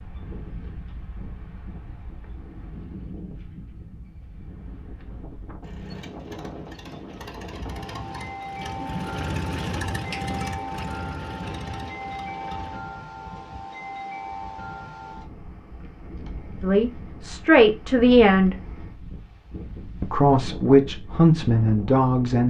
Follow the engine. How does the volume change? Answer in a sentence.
The volume of the engine goes up, then down.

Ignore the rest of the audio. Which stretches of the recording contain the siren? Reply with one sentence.
You can't hear the siren here.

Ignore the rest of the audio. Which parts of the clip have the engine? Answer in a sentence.
The engine can be heard from 5.6 to 12.8 s.